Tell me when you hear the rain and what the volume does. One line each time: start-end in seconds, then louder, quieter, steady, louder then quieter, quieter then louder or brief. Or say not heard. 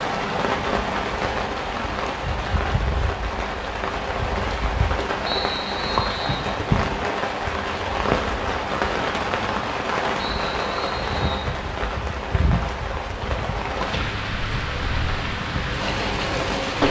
0.0-16.8 steady.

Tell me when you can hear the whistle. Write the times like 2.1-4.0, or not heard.
5.2-6.5, 10.2-11.5.